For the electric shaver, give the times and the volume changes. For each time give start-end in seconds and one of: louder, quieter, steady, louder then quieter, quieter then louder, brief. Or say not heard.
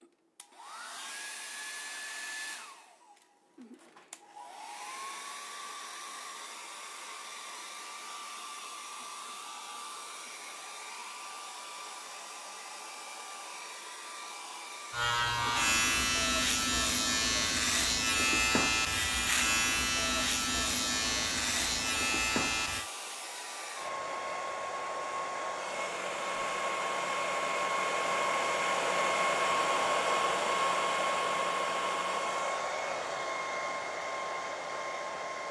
14.9-22.9 steady.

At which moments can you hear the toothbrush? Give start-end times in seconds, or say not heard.
not heard.